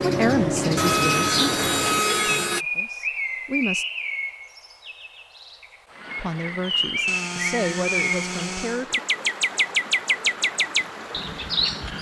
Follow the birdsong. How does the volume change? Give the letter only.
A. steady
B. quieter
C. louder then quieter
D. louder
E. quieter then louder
E.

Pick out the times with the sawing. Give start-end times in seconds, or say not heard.
0.8-2.6, 7.0-8.8.